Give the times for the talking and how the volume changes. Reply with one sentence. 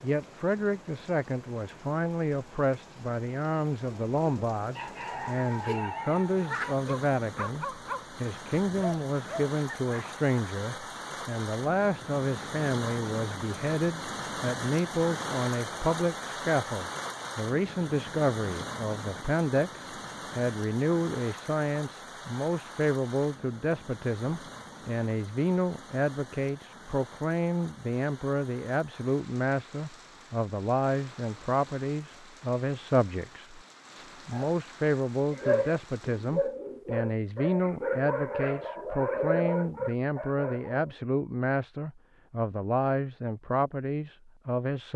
You can hear the talking from 0.0 to 44.9 s, at a steady volume.